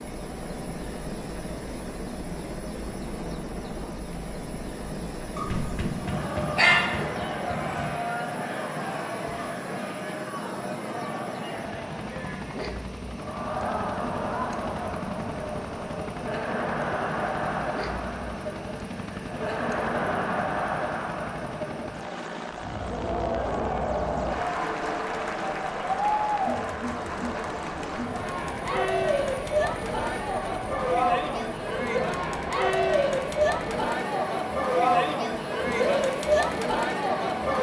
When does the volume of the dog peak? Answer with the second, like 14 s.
7 s.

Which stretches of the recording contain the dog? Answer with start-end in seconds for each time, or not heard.
5.3-7.9.